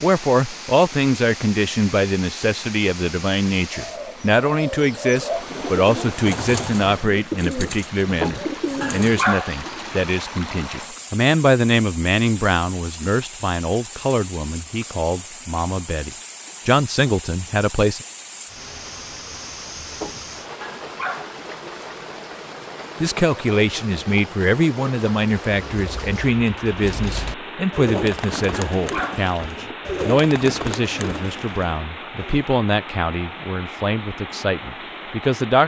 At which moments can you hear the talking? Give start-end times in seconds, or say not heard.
0.0-18.1, 23.0-35.6.